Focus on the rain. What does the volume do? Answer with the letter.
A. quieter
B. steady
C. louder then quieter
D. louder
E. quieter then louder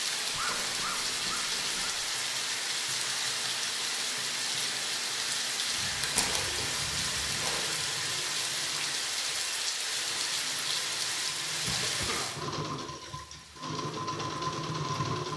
B.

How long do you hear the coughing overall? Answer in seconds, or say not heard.
5 s.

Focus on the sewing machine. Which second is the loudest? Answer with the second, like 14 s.
15 s.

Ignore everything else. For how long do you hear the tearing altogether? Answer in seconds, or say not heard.
2 s.